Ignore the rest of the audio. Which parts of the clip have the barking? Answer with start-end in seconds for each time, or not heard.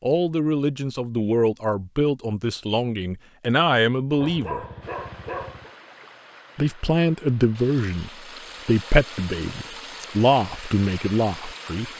4.2-5.7.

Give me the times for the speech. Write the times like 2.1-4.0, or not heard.
0.0-4.7, 6.5-11.9.